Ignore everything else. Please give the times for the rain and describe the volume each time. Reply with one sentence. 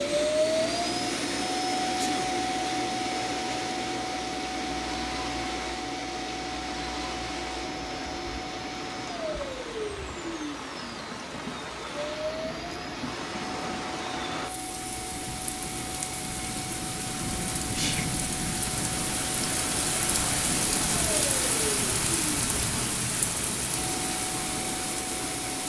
You can hear the rain from 0.0 to 25.6 s, getting louder.